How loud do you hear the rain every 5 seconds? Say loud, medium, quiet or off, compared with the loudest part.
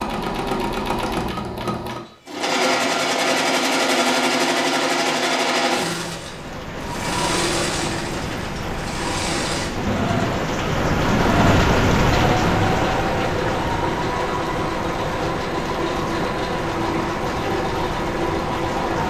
off, medium, loud, medium.